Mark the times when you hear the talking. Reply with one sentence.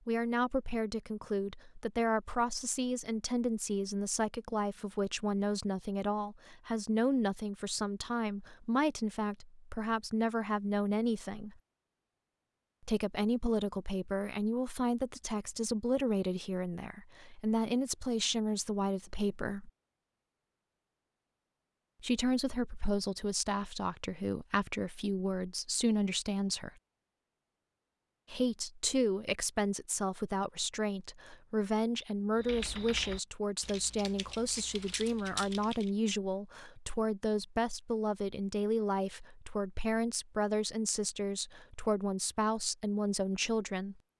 The talking can be heard from 0.1 to 11.6 s, from 12.8 to 19.7 s, from 22.0 to 26.7 s and from 28.3 to 44.0 s.